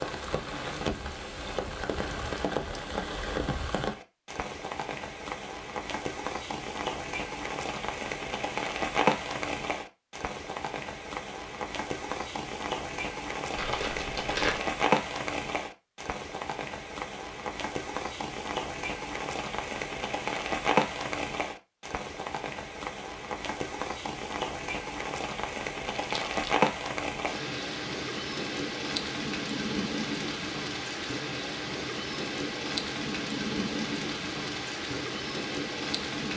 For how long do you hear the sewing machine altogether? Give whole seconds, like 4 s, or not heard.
not heard.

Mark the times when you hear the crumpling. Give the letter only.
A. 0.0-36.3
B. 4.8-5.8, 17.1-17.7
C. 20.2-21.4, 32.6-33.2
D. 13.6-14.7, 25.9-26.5
D.